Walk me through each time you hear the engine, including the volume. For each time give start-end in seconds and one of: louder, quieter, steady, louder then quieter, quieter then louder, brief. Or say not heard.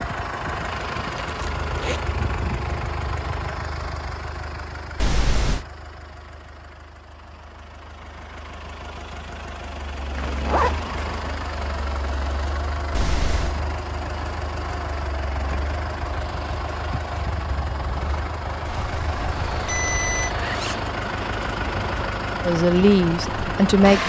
0.0-24.0 quieter then louder.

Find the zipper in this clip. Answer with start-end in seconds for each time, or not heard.
1.1-2.0, 10.2-11.3, 19.3-20.9.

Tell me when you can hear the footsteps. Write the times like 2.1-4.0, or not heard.
not heard.